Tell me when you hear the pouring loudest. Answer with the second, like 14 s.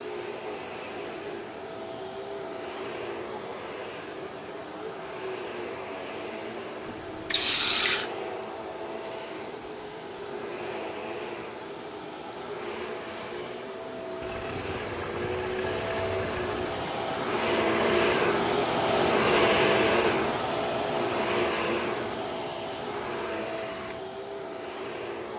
8 s.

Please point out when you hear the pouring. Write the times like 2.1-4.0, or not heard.
6.8-8.1, 14.2-16.8.